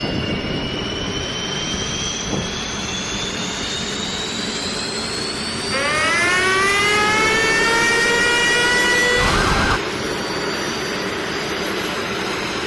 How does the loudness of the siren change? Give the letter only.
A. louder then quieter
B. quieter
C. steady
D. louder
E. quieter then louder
C.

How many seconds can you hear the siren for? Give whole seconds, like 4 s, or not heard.
4 s.